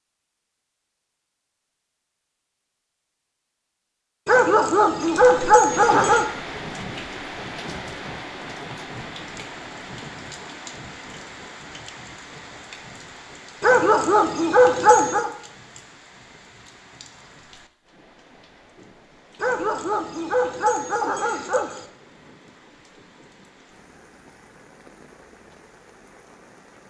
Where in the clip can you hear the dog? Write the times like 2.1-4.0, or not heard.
4.2-6.2, 13.6-15.3, 19.4-21.9.